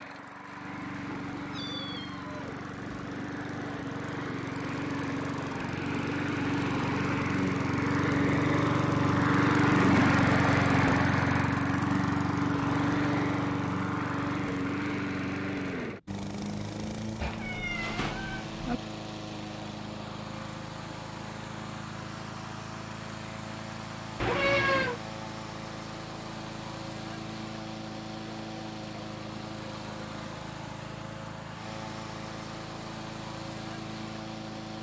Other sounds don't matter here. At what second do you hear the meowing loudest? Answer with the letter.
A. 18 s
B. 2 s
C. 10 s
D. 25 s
D.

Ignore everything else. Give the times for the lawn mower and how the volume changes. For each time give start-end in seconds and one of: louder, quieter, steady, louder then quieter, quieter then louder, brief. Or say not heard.
0.0-34.7 louder then quieter.